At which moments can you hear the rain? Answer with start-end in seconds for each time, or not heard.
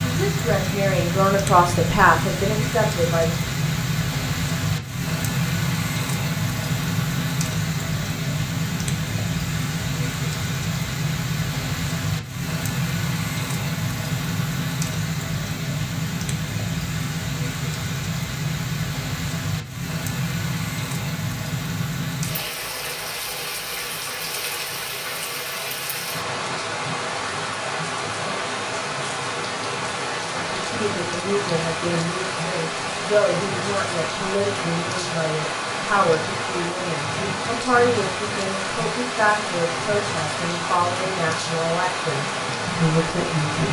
0.0-43.6.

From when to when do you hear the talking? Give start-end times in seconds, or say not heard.
0.0-3.5, 30.4-43.6.